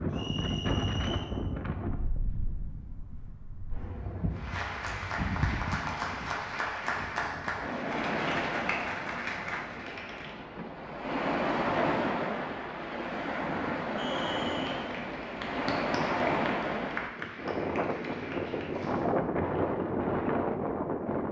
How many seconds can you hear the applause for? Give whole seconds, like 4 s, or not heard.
11 s.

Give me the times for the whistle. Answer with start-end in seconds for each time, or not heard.
0.1-1.3, 13.9-14.8.